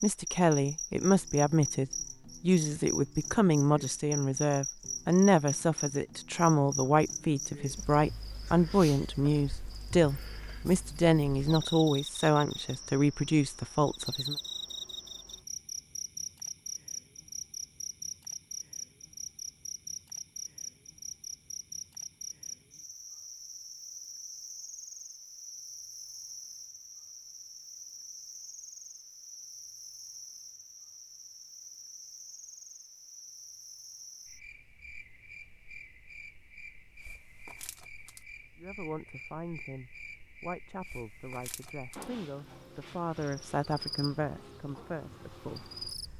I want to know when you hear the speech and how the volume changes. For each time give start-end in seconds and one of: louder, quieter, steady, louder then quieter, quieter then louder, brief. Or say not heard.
0.0-14.3 steady
38.5-46.1 louder then quieter.